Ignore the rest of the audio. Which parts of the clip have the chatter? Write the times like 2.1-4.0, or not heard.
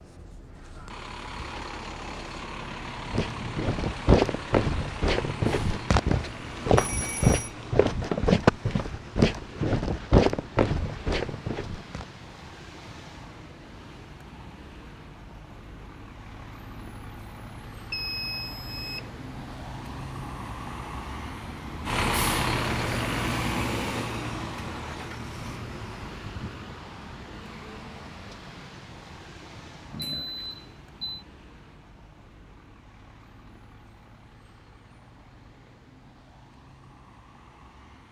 not heard.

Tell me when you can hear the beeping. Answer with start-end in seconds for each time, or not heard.
6.8-7.5, 17.9-19.1, 29.9-31.2.